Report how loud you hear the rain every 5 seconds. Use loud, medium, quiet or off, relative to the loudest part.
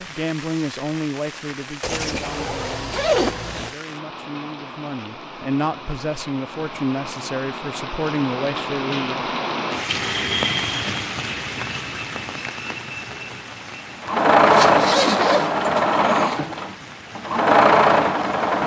medium, loud, loud, medium.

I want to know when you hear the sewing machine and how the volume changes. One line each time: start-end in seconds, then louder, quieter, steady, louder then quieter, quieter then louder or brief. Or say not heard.
14.0-18.6 quieter then louder.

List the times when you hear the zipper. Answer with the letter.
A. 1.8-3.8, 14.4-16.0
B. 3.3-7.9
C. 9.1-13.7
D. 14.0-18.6
A.